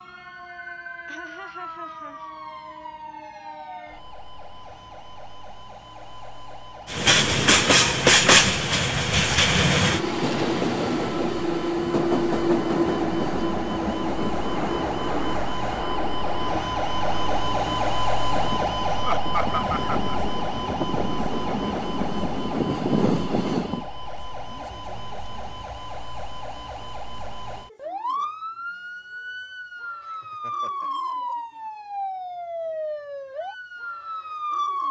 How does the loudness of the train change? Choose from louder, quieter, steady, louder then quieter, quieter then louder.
quieter then louder.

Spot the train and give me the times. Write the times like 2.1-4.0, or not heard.
6.8-23.9.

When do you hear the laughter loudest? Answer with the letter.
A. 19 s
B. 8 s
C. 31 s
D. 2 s
A.